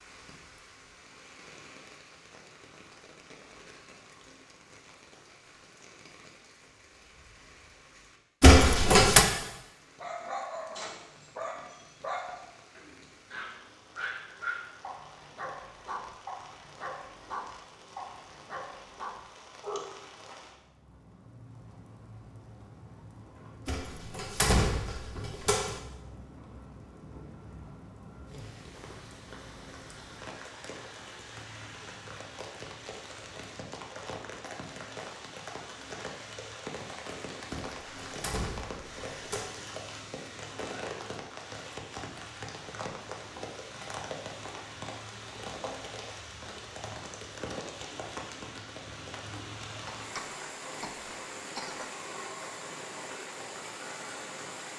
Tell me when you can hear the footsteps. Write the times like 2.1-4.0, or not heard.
not heard.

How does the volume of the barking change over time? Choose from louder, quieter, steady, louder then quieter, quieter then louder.
steady.